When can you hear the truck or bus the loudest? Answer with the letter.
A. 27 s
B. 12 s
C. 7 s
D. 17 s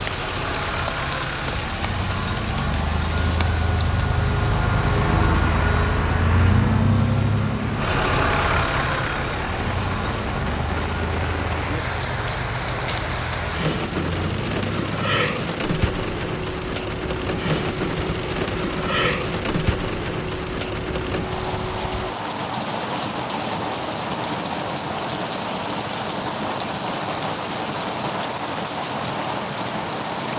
C.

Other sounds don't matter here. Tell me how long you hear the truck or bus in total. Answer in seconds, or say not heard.
22 s.